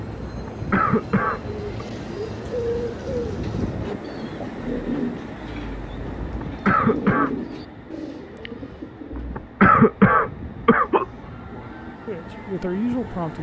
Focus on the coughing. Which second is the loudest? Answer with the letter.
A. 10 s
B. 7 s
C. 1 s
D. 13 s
A.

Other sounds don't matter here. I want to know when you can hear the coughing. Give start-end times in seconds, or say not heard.
0.2-1.9, 6.2-7.3, 9.1-11.1.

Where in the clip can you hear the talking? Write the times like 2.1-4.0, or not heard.
11.5-13.3.